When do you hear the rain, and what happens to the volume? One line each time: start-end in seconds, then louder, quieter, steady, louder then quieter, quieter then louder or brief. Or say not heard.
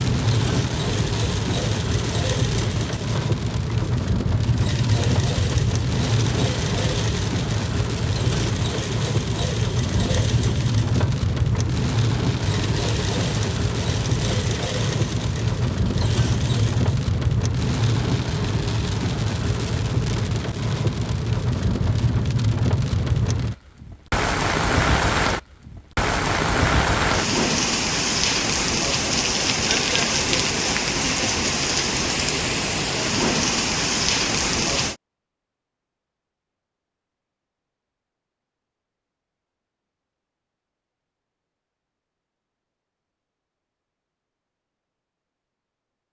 0.0-35.0 steady.